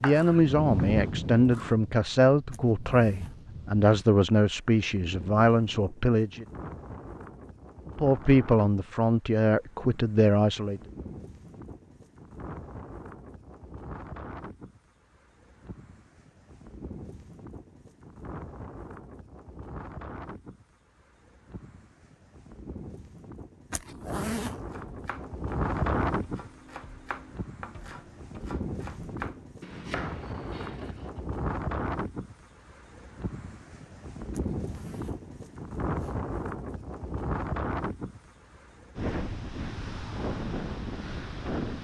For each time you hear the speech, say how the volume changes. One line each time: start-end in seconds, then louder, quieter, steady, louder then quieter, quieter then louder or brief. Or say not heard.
0.0-6.5 steady
8.0-10.8 brief.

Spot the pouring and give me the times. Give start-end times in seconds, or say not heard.
not heard.